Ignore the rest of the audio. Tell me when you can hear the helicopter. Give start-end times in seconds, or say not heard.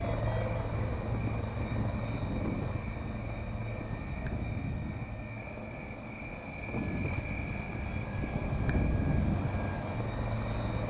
0.0-10.8.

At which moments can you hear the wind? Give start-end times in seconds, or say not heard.
0.0-10.8.